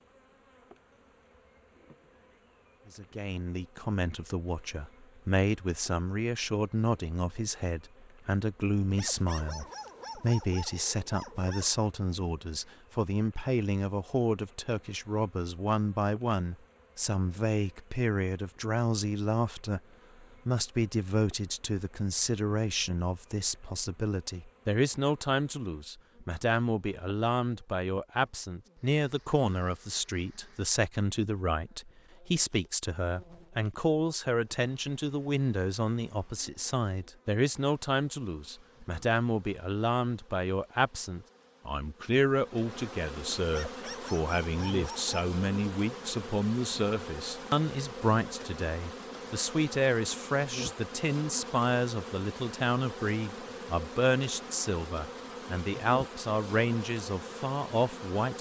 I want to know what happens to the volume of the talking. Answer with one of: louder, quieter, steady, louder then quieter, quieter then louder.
steady.